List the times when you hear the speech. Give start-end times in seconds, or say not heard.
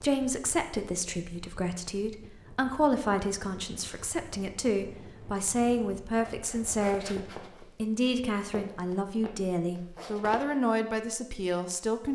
0.0-12.0.